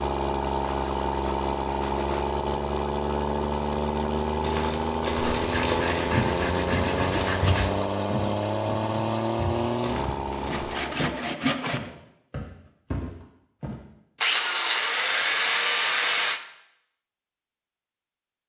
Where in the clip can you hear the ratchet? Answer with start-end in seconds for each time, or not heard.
4.5-6.2.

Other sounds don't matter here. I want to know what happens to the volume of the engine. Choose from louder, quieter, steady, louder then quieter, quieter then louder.
steady.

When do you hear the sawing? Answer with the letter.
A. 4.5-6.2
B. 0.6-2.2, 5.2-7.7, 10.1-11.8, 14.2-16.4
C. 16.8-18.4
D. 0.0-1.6
B.